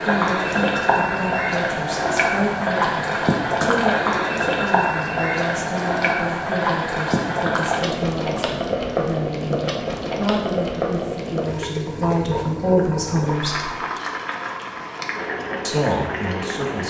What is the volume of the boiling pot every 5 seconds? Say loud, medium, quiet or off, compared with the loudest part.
loud, loud, medium, medium.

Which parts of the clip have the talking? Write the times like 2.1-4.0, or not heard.
0.0-13.7, 15.7-16.8.